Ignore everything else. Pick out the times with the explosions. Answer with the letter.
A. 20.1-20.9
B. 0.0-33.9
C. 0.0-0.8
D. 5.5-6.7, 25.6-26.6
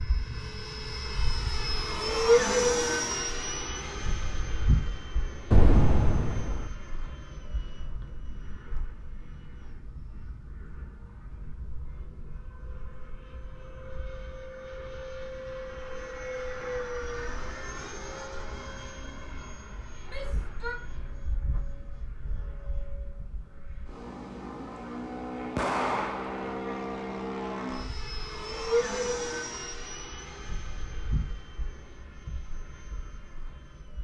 D.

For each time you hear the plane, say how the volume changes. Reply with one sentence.
You can hear the plane from 0.0 to 33.9 s, getting quieter then louder.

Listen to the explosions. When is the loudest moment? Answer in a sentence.
The loudest moment of the explosions is at 6 seconds.